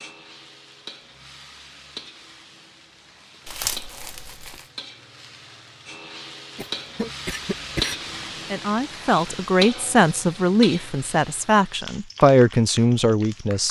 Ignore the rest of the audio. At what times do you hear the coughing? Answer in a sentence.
You can hear the coughing from 6.5 to 8.6 s.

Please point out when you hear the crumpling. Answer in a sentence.
You can hear the crumpling from 3.5 to 4.7 s.